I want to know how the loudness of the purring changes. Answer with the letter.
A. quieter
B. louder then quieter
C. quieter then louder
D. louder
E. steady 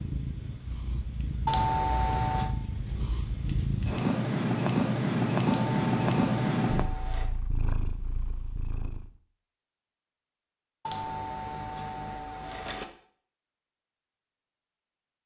B.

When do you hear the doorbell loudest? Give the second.
2 s.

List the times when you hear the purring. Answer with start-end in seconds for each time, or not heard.
0.0-9.1.